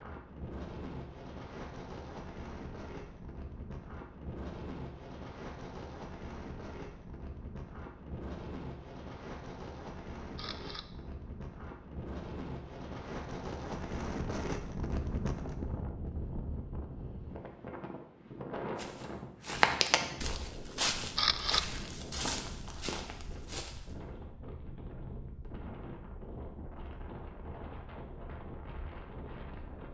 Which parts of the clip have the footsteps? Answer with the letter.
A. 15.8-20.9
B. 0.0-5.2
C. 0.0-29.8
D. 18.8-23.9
D.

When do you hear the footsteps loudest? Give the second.
20 s.